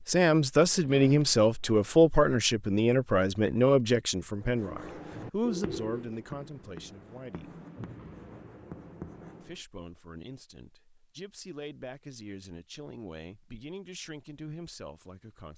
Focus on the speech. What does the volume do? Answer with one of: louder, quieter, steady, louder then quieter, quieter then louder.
quieter.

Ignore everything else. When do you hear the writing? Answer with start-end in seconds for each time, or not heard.
4.3-9.6.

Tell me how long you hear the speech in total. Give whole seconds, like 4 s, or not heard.
14 s.